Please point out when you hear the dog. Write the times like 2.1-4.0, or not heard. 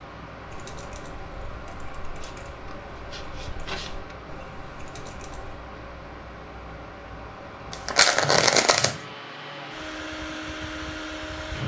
not heard.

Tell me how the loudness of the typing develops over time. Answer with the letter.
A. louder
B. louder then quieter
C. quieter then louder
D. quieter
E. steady
E.